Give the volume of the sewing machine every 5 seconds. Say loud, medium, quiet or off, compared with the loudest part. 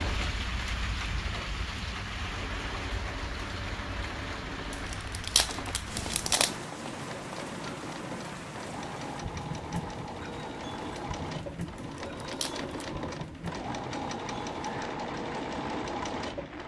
medium, medium, loud, loud.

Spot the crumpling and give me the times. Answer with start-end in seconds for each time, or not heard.
4.7-6.5, 11.8-12.7.